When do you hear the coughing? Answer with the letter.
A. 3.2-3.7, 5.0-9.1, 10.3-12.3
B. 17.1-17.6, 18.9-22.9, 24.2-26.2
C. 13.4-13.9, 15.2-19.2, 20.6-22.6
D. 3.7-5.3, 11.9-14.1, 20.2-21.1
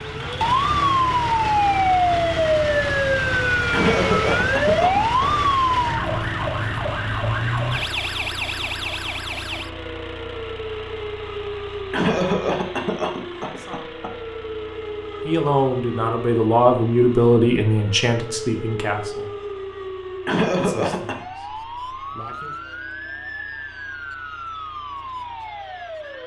D.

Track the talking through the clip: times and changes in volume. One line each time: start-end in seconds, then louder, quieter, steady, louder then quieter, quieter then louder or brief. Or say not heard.
13.4-13.9 brief
15.2-19.2 louder then quieter
20.6-22.6 brief.